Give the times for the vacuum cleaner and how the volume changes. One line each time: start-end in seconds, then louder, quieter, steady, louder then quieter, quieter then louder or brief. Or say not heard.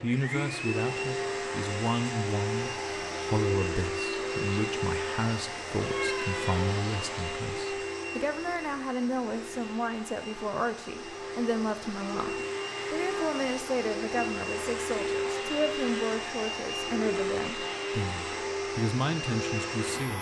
0.0-20.1 quieter then louder.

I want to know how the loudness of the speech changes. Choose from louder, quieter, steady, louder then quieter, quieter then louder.
steady.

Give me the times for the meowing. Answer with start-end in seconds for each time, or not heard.
5.8-6.8.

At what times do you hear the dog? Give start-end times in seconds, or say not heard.
not heard.